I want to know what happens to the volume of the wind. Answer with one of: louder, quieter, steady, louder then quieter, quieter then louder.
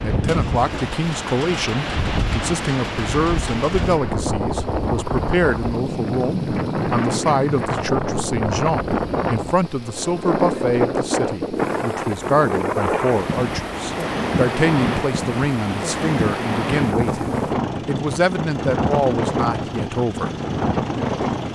steady.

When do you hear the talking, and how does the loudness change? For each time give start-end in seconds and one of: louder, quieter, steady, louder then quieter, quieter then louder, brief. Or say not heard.
0.0-20.4 steady.